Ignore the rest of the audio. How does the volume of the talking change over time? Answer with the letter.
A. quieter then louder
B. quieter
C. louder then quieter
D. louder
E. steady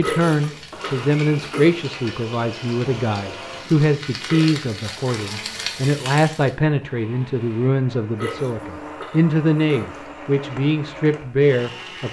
E.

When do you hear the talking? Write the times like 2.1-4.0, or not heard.
0.0-12.0.